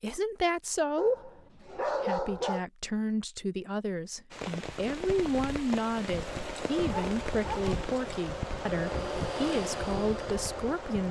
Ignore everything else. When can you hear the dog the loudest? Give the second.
2 s.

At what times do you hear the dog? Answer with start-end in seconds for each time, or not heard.
0.9-2.6, 6.7-7.8.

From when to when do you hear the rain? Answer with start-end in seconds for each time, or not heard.
4.3-11.0.